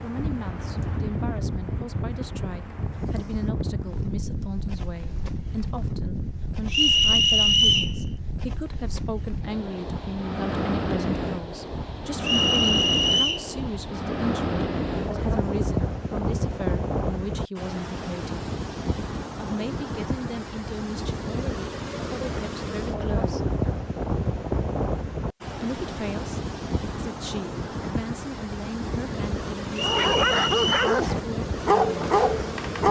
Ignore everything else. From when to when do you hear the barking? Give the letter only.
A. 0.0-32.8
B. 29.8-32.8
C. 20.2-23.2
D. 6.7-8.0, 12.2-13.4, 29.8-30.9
B.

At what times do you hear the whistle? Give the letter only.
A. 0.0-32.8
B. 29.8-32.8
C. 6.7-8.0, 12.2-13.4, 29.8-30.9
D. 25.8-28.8
C.